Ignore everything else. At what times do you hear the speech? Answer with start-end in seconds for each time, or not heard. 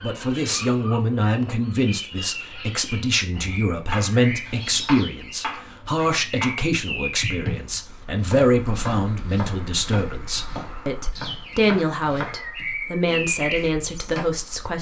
0.0-14.7.